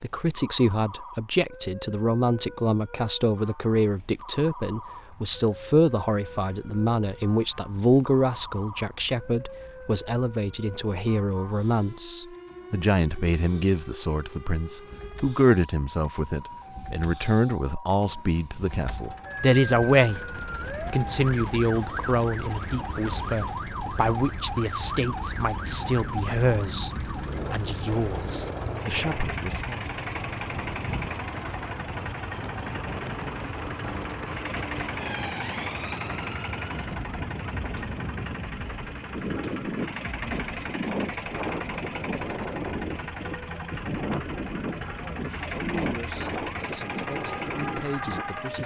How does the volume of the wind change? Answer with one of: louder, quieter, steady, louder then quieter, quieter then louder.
louder.